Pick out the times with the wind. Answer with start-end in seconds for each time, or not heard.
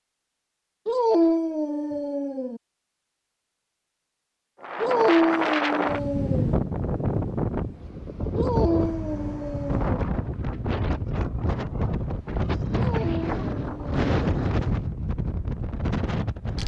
4.6-16.6.